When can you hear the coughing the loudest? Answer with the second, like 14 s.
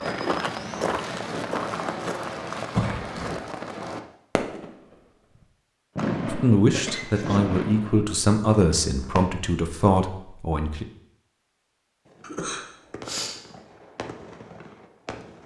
3 s.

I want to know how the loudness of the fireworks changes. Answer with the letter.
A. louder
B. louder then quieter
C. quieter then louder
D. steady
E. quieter
E.